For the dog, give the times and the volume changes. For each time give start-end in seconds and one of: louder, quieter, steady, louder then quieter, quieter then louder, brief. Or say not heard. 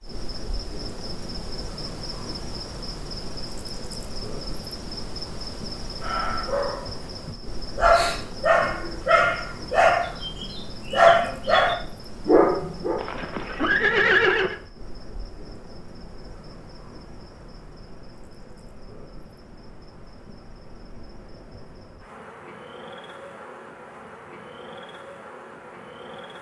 6.0-13.0 louder.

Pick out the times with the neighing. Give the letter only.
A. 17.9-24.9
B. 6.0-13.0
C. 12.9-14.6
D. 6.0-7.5
C.